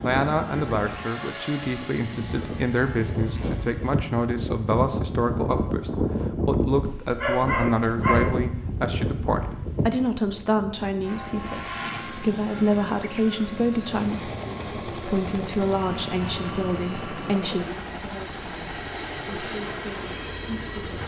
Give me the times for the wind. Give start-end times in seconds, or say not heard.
0.0-17.4.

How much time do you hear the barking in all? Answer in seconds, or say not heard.
2 s.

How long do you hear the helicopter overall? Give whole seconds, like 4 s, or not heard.
14 s.